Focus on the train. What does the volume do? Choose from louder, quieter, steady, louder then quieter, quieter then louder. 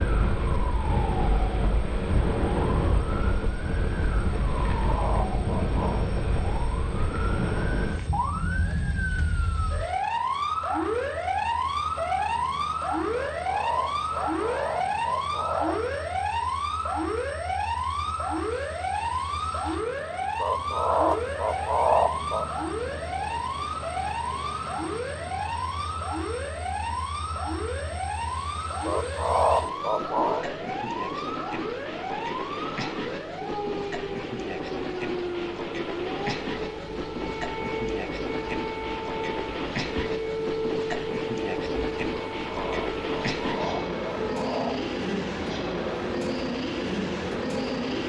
louder.